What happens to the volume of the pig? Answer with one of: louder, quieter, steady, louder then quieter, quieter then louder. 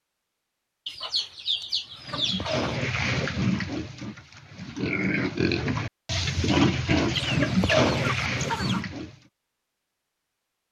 quieter then louder.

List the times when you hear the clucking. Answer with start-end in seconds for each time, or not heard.
0.8-2.8, 7.1-8.8.